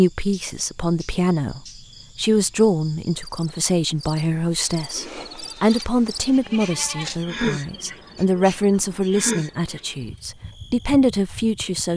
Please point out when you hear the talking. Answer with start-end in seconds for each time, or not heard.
0.0-11.9.